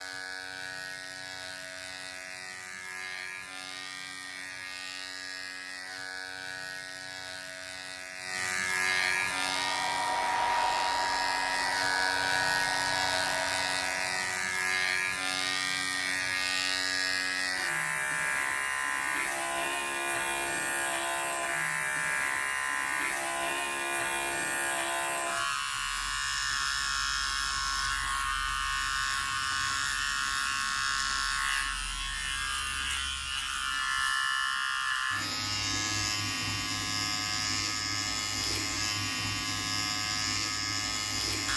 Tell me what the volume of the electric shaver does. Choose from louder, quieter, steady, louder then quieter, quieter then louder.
louder.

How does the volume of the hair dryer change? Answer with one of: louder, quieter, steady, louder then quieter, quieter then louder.
quieter.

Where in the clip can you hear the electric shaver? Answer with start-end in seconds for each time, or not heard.
0.0-41.5.